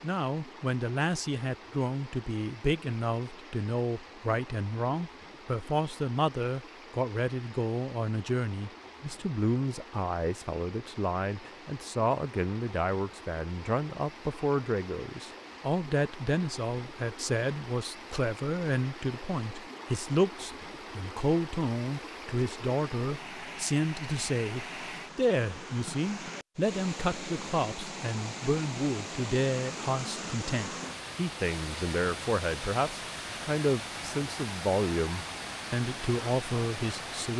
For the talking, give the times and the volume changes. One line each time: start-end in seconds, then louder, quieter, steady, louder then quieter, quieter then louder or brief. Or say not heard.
0.0-37.3 steady.